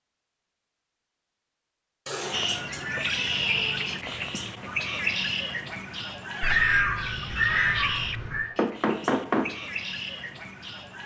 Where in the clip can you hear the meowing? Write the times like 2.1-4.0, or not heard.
2.0-3.9, 6.4-8.5.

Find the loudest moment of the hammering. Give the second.
9 s.